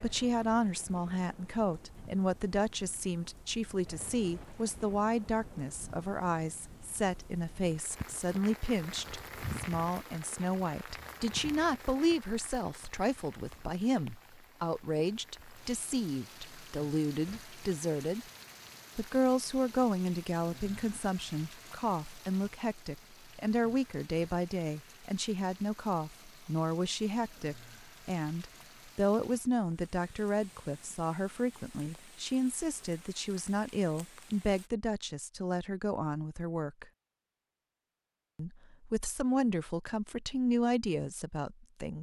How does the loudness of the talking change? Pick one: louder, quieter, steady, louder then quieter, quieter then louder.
steady.